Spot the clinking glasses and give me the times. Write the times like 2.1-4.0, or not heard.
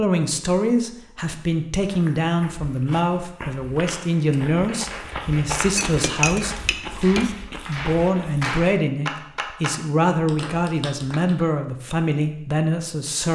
5.8-7.3.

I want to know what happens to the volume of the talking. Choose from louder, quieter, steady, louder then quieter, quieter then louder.
steady.